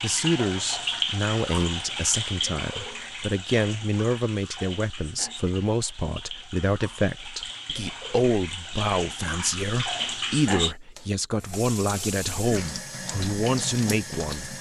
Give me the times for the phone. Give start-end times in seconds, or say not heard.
not heard.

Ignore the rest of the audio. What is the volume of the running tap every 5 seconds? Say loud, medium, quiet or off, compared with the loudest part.
loud, medium, loud.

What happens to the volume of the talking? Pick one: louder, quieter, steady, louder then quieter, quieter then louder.
steady.